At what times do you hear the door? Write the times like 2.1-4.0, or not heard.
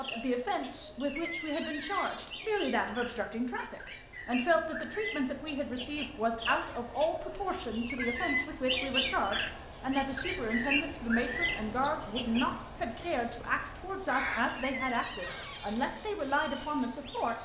1.0-2.4, 7.7-8.3, 14.4-15.8.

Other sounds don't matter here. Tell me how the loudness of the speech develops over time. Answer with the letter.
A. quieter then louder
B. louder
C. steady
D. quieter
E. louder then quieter
C.